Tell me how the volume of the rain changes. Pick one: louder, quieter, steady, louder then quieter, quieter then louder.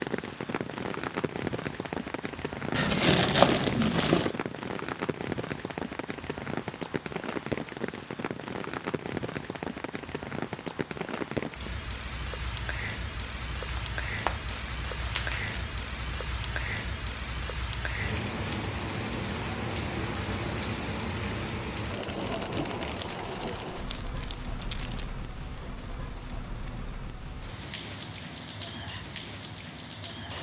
quieter.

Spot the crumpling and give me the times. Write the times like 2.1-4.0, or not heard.
2.7-4.3, 13.7-15.7, 23.6-25.1.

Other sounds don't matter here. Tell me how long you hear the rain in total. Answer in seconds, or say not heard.
30 s.